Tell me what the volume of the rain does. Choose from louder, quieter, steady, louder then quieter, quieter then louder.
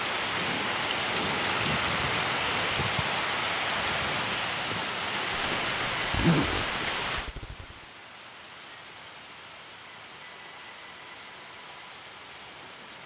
quieter.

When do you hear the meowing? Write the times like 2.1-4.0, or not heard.
not heard.